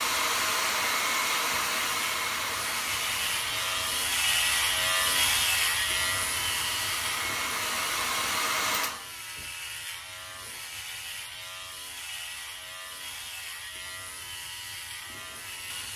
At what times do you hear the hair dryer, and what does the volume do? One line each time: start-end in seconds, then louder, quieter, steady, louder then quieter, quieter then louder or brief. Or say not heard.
0.0-9.1 quieter then louder.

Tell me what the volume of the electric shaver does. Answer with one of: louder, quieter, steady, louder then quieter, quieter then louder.
quieter.